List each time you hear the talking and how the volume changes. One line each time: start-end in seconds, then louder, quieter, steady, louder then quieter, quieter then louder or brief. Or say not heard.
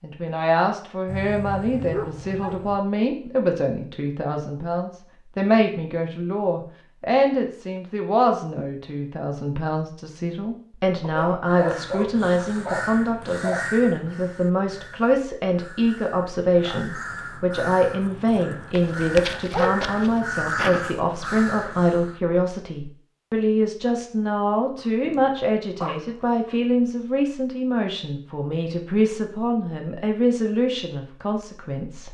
0.0-32.0 steady.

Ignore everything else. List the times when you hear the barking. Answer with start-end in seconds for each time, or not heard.
1.1-2.8, 11.0-13.7, 18.8-20.1, 24.8-26.6.